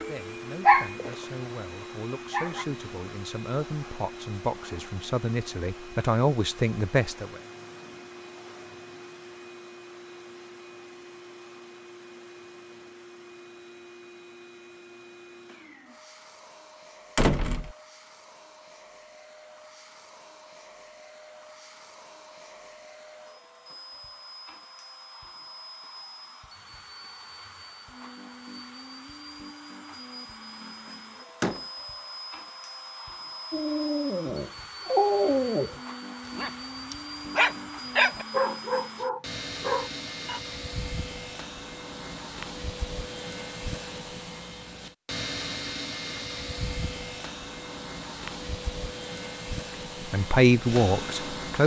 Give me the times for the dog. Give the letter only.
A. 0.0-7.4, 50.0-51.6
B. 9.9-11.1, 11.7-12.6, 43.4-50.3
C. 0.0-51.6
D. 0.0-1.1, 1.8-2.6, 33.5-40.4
D.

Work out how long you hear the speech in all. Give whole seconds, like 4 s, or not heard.
9 s.